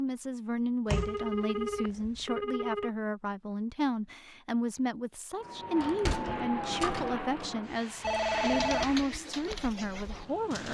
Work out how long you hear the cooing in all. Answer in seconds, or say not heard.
2 s.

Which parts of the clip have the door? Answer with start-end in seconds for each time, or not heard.
0.8-2.2, 5.8-7.2.